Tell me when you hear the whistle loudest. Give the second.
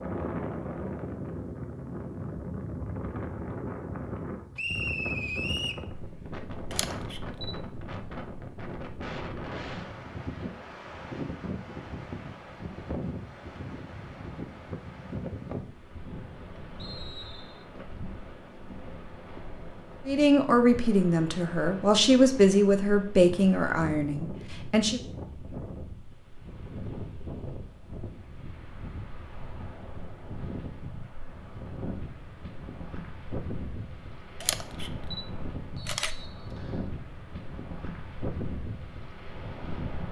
5 s.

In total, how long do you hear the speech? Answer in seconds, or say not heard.
5 s.